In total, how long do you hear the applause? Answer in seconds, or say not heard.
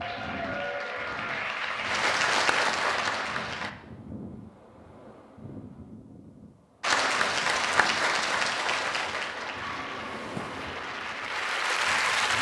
9 s.